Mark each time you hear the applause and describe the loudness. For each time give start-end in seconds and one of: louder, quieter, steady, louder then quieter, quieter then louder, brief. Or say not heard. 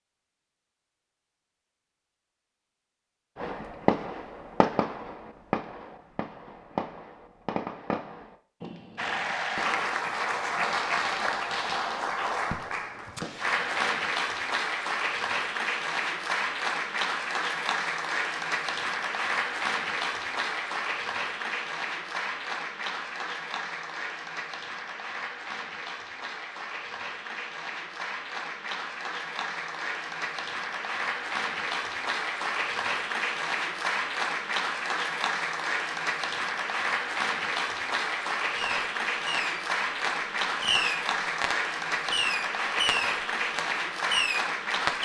8.9-45.0 quieter then louder.